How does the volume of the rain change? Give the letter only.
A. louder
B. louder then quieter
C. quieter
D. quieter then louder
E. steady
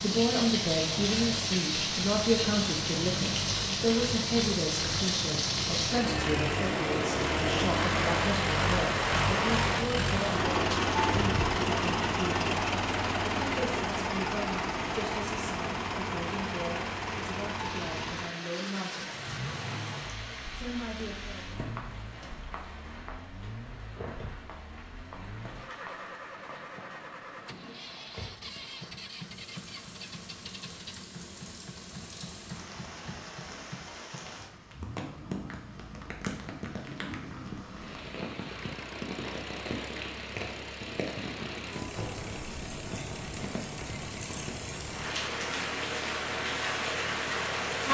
D.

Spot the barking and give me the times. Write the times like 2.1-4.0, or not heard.
not heard.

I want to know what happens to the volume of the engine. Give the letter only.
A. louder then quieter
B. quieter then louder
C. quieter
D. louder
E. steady
C.